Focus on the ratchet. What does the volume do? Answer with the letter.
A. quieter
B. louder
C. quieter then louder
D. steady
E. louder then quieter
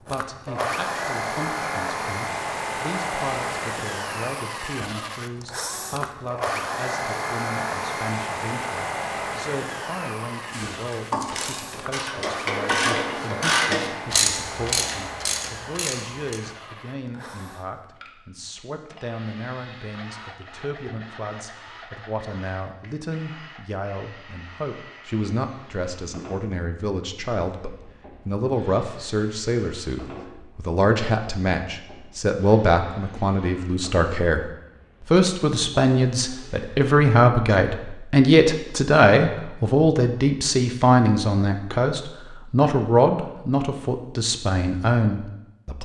E.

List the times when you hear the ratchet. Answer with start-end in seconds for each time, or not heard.
10.5-16.4.